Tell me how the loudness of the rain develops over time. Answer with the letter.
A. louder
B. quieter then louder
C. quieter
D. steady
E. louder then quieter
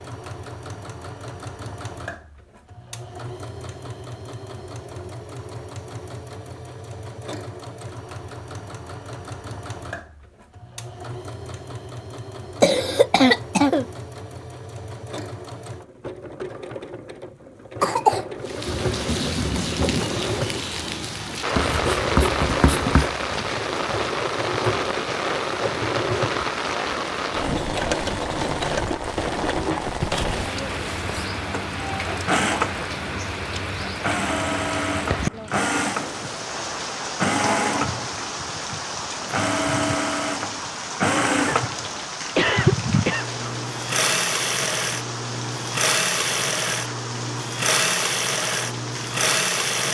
C.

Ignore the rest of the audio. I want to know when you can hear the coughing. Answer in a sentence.
You can hear the coughing from 12.6 to 13.8 s, from 17.8 to 18.2 s and from 41.5 to 43.4 s.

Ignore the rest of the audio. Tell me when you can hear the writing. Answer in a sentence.
The writing can be heard from 21.6 to 23.1 s.